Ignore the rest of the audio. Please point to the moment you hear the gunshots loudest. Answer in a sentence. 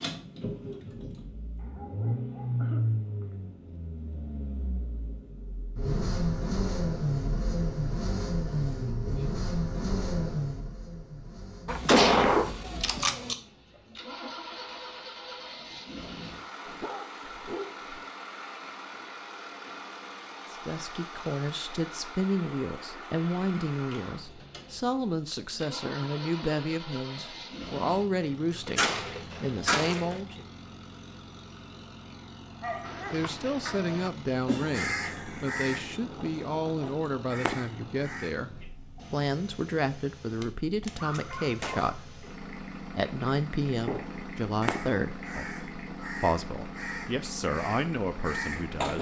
The loudest moment of the gunshots is at 12 seconds.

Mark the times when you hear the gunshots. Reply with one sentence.
The gunshots can be heard from 11.7 to 13.3 s, from 28.6 to 30.2 s and from 40.4 to 41.9 s.